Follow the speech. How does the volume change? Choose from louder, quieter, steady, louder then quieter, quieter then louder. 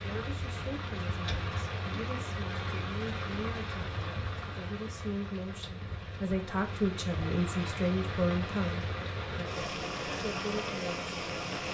louder then quieter.